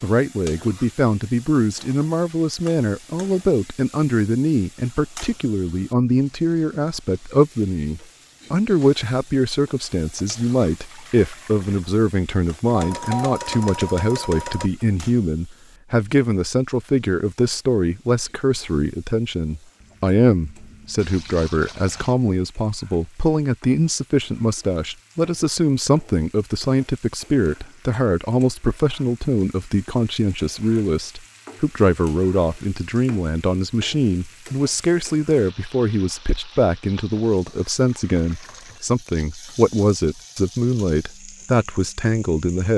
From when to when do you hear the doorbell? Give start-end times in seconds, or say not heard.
12.7-14.7.